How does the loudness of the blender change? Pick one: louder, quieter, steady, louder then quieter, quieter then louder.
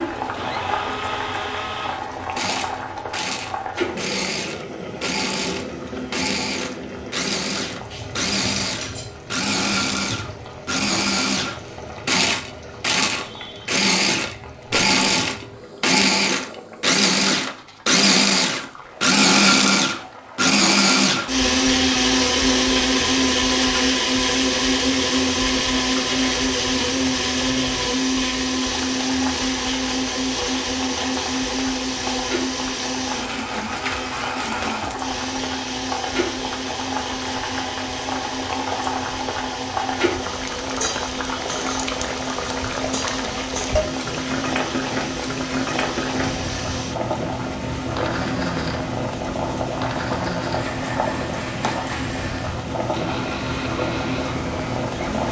louder then quieter.